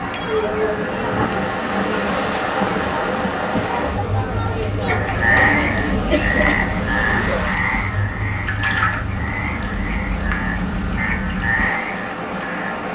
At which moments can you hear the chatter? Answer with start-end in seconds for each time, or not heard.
0.0-7.5.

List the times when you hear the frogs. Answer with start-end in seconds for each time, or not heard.
4.8-12.7.